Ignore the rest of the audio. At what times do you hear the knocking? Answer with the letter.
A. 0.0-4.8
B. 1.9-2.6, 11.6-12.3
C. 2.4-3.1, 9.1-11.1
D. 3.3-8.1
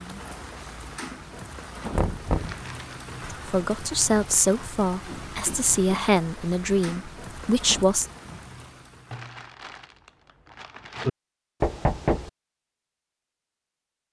B.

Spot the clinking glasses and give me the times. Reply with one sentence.
You can't hear the clinking glasses here.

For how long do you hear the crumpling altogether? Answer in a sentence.
You can hear the crumpling for 3 seconds altogether.